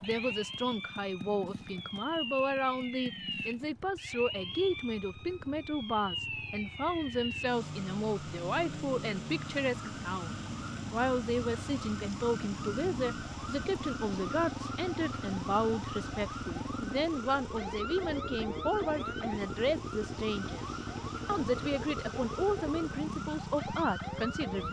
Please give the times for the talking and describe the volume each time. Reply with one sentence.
You can hear the talking from 0.0 to 24.6 s, at a steady volume.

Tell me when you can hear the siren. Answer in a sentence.
You can hear the siren from 0.0 to 24.6 s.